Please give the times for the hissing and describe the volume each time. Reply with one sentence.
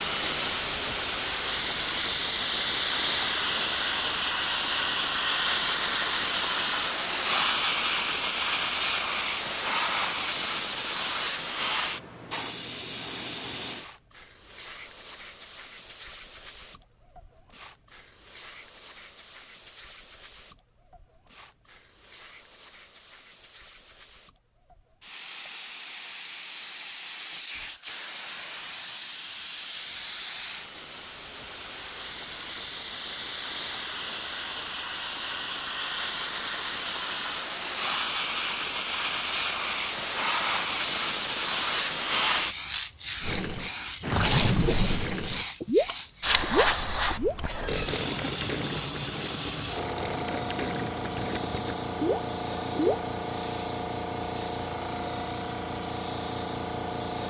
You can hear the hissing from 0.0 to 57.2 s, getting quieter then louder.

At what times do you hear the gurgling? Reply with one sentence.
You can hear the gurgling from 43.2 to 53.0 s.